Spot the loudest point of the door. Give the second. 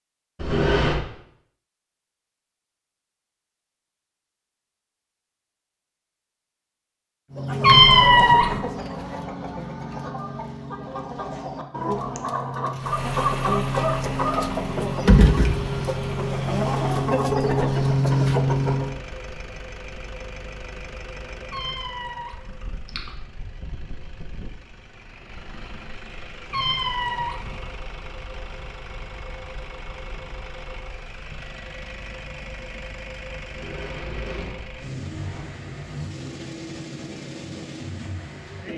1 s.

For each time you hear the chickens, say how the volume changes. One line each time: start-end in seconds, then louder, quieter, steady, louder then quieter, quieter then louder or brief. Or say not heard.
7.3-19.0 louder.